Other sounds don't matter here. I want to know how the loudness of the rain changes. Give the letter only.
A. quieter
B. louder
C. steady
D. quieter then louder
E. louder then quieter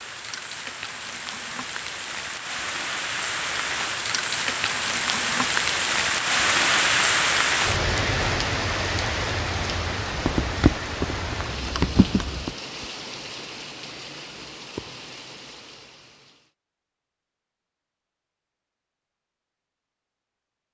E.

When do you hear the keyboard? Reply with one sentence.
You can hear the keyboard from 10.2 to 12.5 s.